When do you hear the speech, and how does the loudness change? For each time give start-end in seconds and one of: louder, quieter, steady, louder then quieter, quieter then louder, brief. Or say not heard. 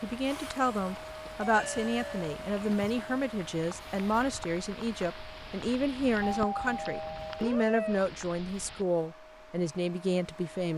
0.0-10.7 steady.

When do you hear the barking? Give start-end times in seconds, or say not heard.
not heard.